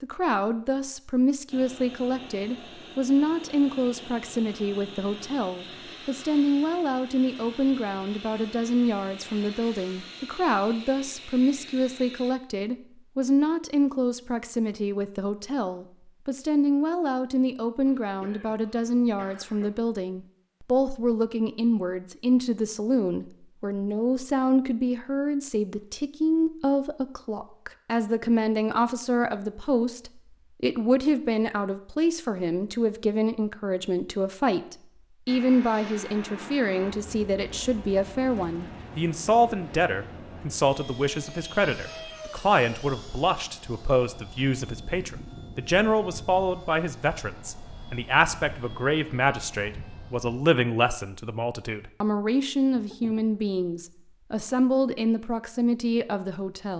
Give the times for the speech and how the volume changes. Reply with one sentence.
You can hear the speech from 0.0 to 56.7 s, at a steady volume.